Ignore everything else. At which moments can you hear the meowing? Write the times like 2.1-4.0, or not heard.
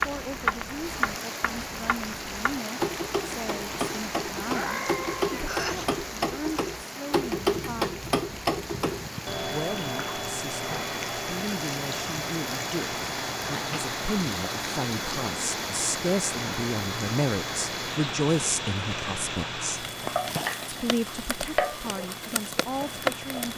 4.3-5.8.